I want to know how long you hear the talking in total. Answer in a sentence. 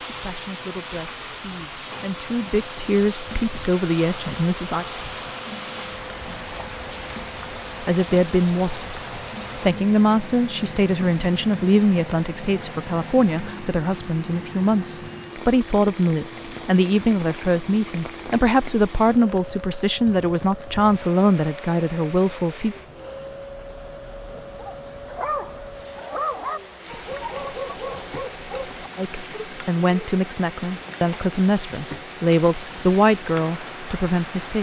You can hear the talking for 25 seconds altogether.